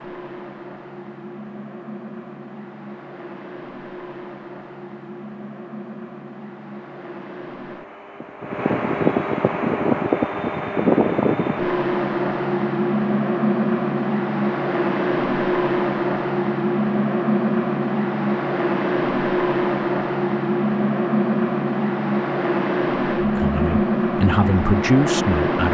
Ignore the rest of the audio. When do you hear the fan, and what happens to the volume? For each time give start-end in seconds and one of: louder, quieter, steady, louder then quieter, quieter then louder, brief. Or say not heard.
0.0-25.6 louder.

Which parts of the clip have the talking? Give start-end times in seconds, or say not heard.
23.2-25.6.